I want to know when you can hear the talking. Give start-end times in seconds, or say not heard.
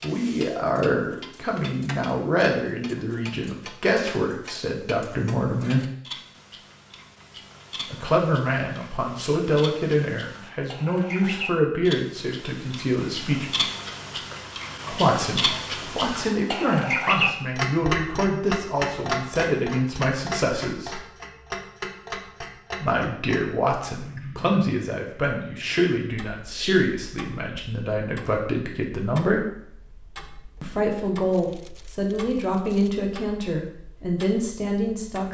0.0-5.8, 7.9-13.5, 14.9-21.0, 22.8-29.5, 30.6-35.2.